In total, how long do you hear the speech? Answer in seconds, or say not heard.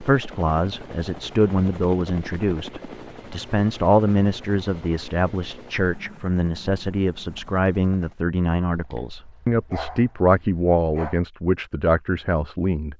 13 s.